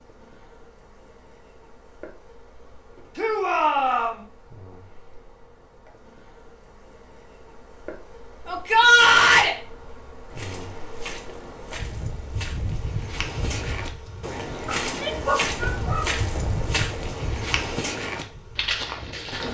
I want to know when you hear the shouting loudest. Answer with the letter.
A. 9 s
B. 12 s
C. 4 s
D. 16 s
A.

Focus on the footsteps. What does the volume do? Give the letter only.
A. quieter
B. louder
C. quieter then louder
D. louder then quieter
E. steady
B.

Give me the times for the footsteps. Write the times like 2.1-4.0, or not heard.
10.3-19.4.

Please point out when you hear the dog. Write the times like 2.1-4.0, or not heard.
14.7-16.2.